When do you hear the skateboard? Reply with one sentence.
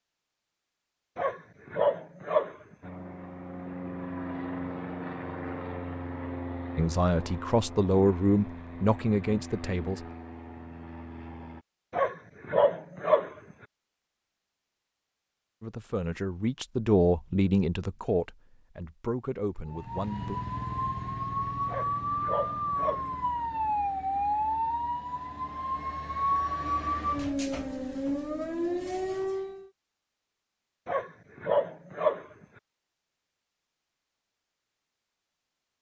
The skateboard can't be heard in this clip.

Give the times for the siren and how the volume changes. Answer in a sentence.
The siren can be heard from 19.6 to 29.7 s, at a steady volume.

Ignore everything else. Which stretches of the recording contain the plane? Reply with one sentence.
You can hear the plane from 2.8 to 11.7 s.